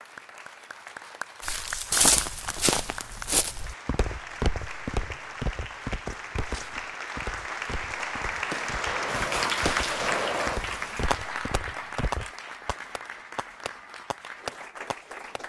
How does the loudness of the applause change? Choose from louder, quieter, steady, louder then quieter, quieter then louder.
louder then quieter.